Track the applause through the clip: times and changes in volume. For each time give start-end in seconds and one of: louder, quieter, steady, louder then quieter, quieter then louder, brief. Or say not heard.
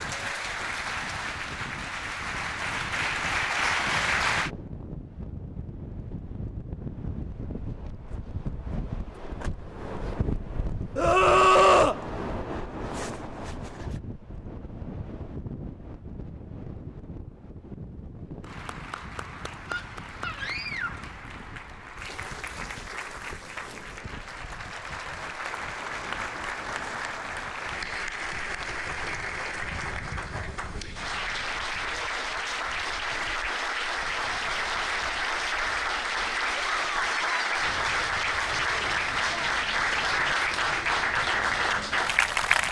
0.0-4.5 louder
18.4-42.6 louder.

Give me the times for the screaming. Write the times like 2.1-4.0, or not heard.
10.9-12.0, 19.6-21.1, 36.5-37.5.